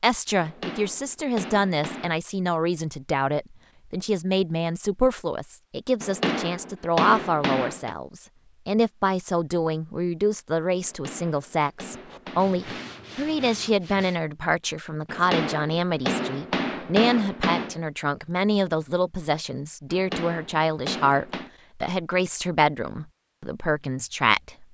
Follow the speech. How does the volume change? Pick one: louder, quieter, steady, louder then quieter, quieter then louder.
steady.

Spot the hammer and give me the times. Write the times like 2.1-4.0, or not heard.
0.4-2.1, 6.0-8.0, 10.8-13.0, 15.1-17.8, 19.9-21.5.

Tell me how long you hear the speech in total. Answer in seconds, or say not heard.
25 s.